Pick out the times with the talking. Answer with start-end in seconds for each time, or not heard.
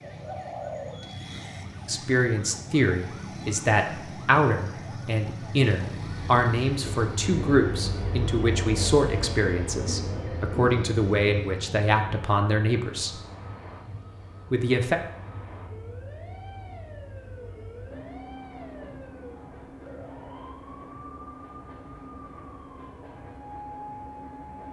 1.9-13.1, 14.5-14.9.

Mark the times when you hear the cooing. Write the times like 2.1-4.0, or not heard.
0.0-1.6.